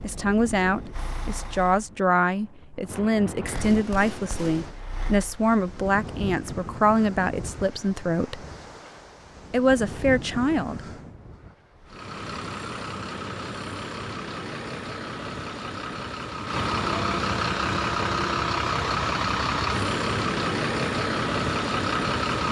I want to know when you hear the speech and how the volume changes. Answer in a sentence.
The speech can be heard from 0.0 to 8.4 s, at a steady volume; and briefly from 9.5 to 10.8 s.